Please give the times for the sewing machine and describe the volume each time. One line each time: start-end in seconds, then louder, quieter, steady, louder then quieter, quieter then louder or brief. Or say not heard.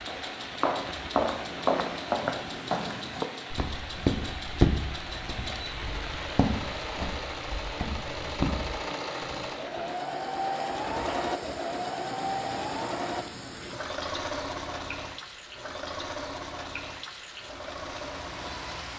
0.0-18.9 louder then quieter.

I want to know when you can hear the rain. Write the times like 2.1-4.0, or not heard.
0.0-18.9.